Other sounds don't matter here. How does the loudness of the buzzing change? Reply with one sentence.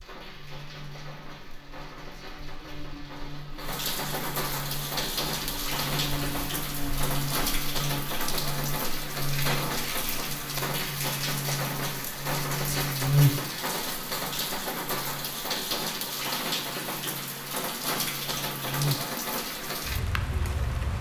The loudness of the buzzing goes up, then down.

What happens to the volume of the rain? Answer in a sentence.
The loudness of the rain goes up.